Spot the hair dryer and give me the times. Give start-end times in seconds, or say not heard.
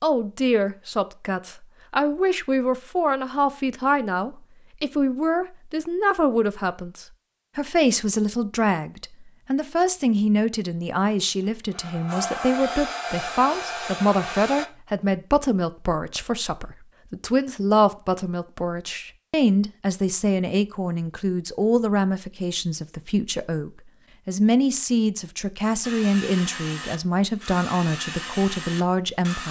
11.1-14.7, 25.8-29.4.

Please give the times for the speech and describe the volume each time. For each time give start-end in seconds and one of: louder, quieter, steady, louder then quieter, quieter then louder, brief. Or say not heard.
0.0-29.4 steady.